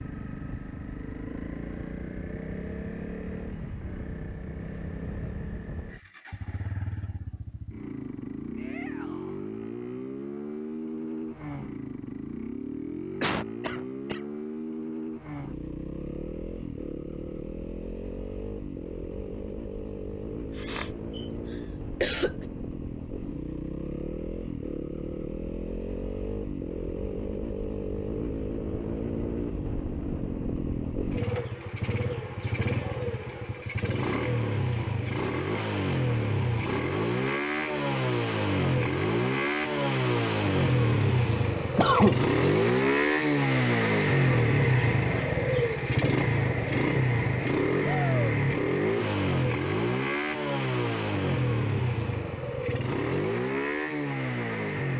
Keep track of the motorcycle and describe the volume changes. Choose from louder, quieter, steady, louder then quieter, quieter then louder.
louder.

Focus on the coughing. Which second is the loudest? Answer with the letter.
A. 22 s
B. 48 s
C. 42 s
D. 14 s
C.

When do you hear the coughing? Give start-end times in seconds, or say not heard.
13.2-14.2, 20.6-22.4, 41.8-42.2.